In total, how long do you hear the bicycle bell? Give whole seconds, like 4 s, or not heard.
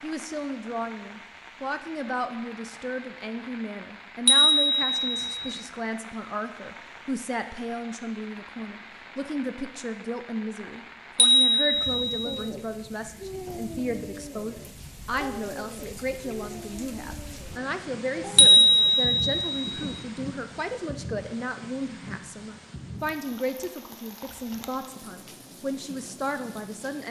4 s.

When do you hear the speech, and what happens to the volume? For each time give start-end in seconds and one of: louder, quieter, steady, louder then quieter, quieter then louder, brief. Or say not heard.
0.0-27.0 steady.